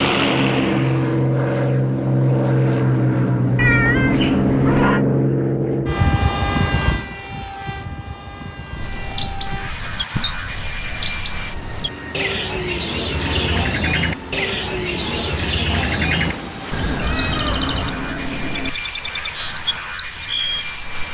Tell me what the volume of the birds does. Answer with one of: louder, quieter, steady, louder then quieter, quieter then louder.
steady.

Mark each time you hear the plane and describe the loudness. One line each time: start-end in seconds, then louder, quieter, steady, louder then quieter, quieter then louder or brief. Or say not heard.
0.0-21.0 quieter.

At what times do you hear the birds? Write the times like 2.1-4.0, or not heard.
8.8-21.0.